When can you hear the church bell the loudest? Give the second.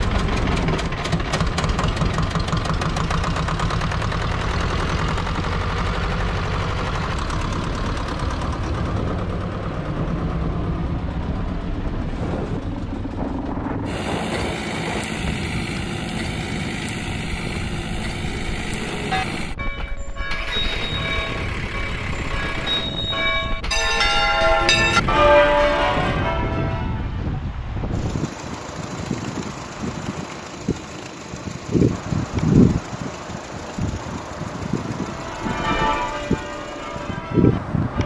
25 s.